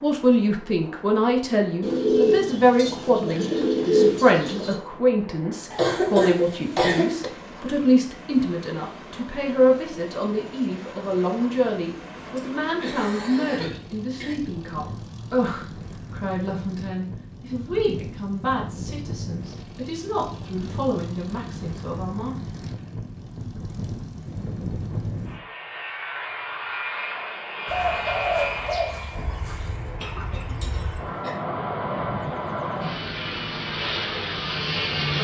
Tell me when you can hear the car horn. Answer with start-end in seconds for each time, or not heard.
not heard.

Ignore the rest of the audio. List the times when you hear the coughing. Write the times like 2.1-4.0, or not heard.
5.7-7.3, 12.3-14.3, 29.9-31.4.